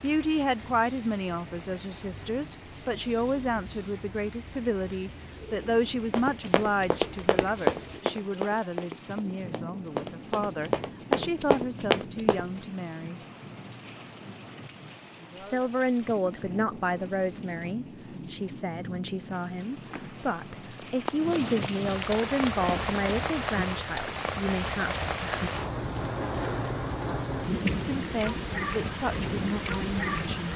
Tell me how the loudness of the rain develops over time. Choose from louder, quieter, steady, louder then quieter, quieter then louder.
louder.